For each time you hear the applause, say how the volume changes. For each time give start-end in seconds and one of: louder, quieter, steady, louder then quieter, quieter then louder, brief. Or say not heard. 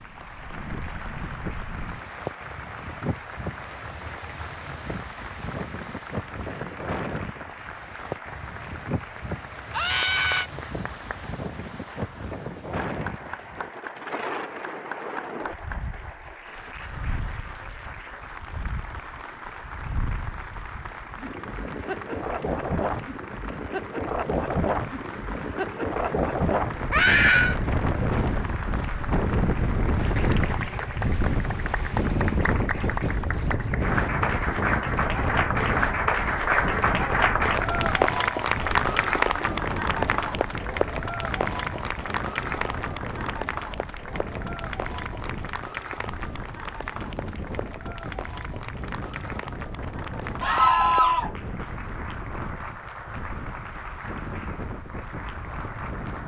0.0-56.2 louder then quieter.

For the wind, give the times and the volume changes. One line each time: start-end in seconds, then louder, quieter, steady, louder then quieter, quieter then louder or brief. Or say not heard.
0.0-56.2 louder then quieter.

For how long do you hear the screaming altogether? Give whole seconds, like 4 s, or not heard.
2 s.